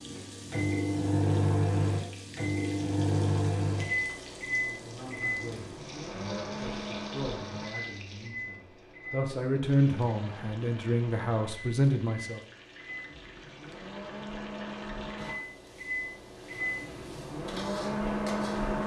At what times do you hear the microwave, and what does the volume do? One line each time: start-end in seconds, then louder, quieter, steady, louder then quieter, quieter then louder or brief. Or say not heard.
0.0-18.8 quieter then louder.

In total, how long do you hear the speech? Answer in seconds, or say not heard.
8 s.